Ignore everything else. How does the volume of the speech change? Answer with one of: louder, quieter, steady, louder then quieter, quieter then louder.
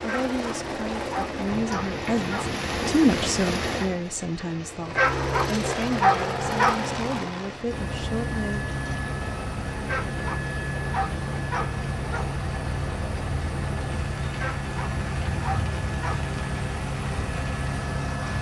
louder then quieter.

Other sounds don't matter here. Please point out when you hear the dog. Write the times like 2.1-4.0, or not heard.
0.1-2.5, 5.0-6.8, 9.8-12.2, 14.3-16.2.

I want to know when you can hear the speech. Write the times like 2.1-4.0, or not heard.
0.0-8.7.